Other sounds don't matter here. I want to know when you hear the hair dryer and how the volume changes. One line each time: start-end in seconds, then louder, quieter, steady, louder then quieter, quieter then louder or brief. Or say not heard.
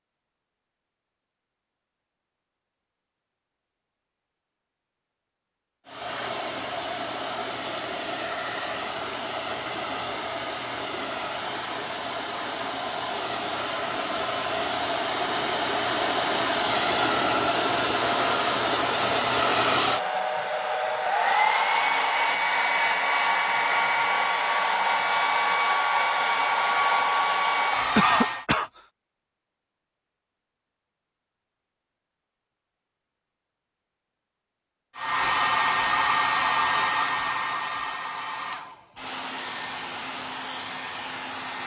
5.8-28.4 louder
35.0-41.6 quieter.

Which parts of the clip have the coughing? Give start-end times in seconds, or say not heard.
27.9-28.7.